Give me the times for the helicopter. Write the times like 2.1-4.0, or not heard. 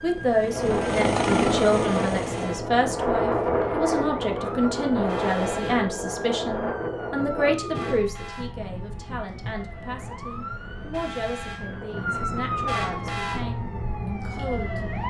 0.0-2.6.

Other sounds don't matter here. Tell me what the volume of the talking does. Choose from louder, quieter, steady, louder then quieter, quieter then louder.
quieter.